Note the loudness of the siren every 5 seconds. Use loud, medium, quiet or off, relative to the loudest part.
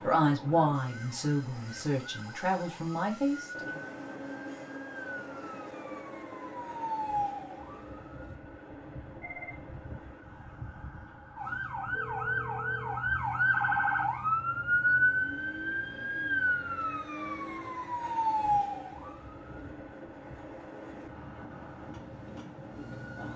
quiet, medium, loud, loud, quiet.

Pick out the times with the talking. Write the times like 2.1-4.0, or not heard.
0.0-3.8.